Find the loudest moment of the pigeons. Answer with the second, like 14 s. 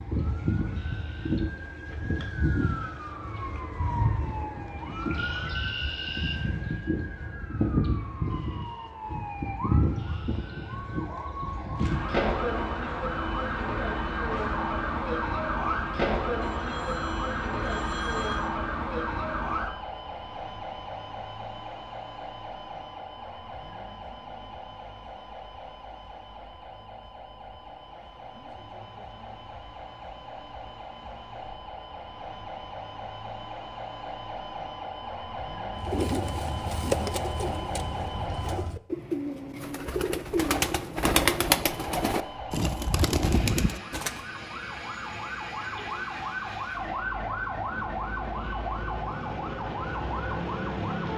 41 s.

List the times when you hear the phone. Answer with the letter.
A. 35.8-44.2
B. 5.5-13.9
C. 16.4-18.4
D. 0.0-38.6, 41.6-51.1
C.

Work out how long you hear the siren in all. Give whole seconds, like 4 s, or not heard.
48 s.